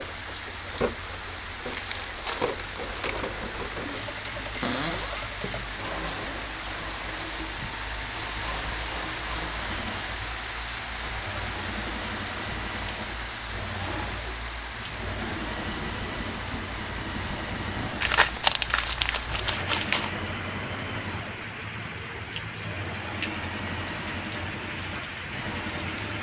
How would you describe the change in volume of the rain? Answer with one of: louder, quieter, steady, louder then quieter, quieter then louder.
steady.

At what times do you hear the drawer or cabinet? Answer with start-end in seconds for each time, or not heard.
4.6-5.3.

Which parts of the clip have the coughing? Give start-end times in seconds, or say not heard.
not heard.